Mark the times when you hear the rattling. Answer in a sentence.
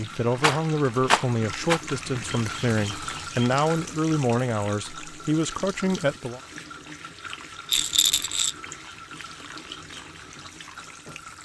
The rattling can be heard from 0.4 to 1.8 s and from 7.7 to 8.6 s.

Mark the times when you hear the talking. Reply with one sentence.
You can hear the talking from 0.0 to 6.4 s.